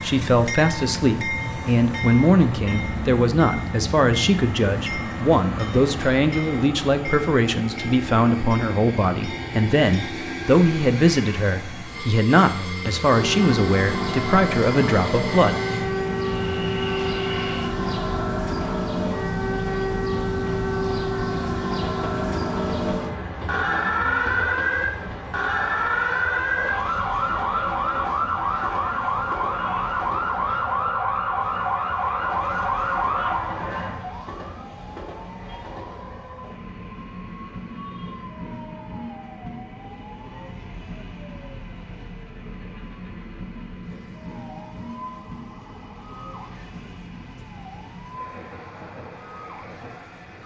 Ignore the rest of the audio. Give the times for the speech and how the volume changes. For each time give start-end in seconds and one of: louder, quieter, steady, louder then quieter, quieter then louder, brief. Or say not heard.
0.0-15.6 steady.